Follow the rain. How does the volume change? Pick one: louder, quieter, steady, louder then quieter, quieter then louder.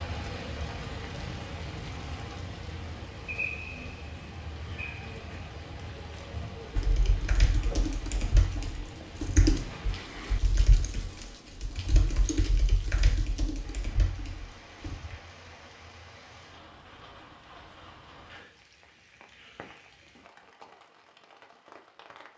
quieter.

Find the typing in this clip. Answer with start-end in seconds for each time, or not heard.
6.8-15.0.